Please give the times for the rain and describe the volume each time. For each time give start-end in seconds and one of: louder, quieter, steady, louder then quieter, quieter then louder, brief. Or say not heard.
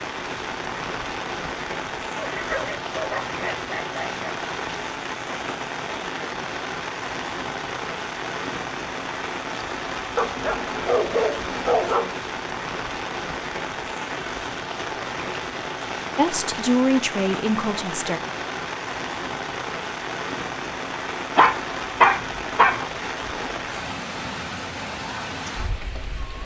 0.0-26.4 steady.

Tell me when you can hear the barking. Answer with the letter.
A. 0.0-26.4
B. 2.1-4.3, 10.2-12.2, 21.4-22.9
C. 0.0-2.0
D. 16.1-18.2
B.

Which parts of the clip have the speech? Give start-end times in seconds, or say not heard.
16.1-18.2.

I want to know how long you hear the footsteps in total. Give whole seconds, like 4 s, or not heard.
not heard.